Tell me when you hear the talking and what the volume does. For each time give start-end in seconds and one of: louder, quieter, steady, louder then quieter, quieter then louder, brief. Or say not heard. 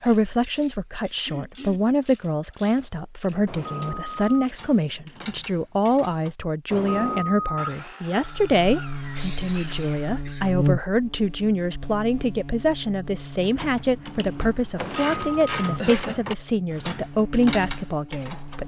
0.0-18.6 steady.